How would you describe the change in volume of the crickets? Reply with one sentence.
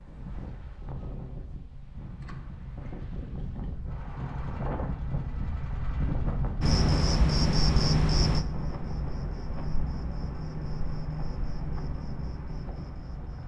The loudness of the crickets goes down.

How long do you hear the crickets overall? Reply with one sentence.
You can hear the crickets for 7 seconds altogether.